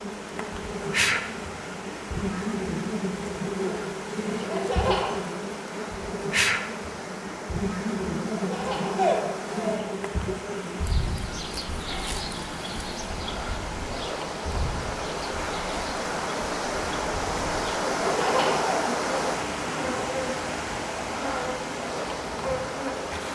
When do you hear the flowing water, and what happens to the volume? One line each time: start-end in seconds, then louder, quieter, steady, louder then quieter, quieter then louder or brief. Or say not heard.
0.0-23.3 louder.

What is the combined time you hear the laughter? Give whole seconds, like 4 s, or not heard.
3 s.